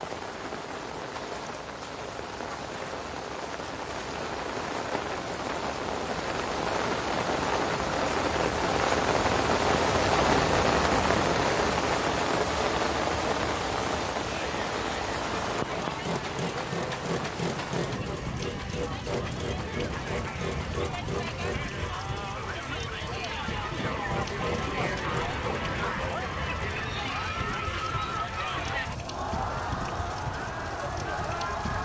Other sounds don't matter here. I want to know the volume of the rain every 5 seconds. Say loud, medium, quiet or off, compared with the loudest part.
medium, loud, loud, medium, quiet, quiet, quiet.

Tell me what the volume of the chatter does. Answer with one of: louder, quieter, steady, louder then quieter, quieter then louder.
louder.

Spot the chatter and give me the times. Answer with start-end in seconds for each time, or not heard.
14.3-31.8.